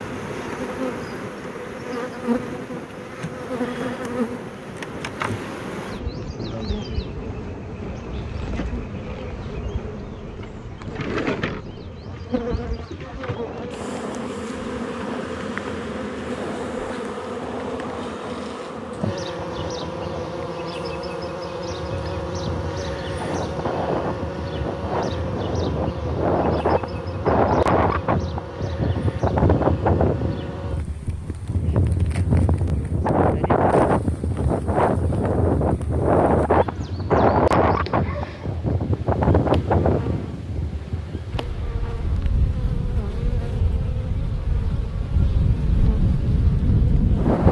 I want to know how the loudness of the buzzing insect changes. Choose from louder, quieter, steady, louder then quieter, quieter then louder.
quieter.